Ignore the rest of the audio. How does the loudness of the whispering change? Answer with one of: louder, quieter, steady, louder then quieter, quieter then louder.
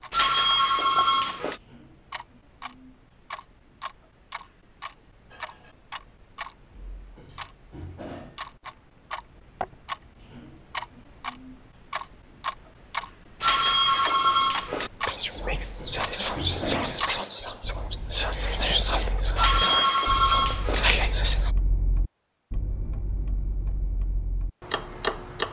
steady.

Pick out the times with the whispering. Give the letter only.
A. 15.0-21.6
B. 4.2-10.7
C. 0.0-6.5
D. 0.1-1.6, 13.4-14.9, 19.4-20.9
A.